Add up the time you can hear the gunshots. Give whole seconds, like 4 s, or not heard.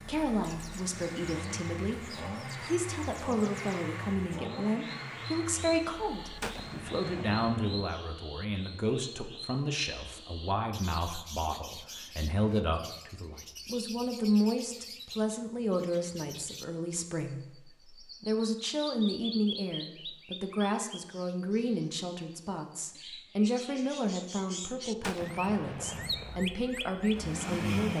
3 s.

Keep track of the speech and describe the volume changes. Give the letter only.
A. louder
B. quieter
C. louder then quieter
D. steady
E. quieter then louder
D.